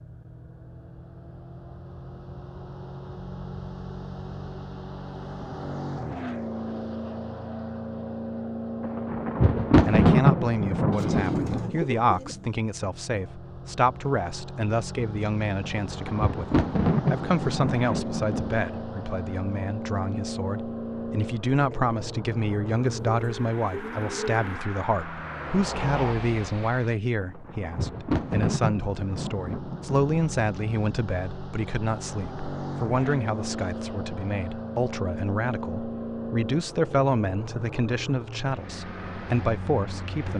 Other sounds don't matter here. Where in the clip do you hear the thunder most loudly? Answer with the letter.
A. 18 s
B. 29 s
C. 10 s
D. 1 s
C.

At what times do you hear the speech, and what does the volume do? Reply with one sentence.
The speech can be heard from 9.8 to 40.3 s, at a steady volume.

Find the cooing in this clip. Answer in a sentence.
You can hear the cooing from 10.9 to 12.4 s and from 22.8 to 24.6 s.